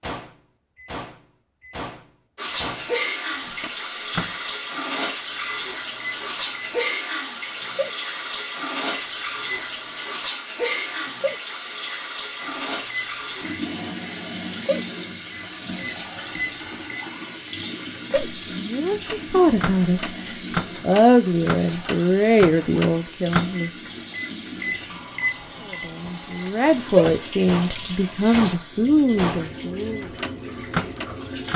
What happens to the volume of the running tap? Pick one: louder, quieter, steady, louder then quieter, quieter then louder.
quieter.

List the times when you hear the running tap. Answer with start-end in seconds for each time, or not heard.
2.4-31.5.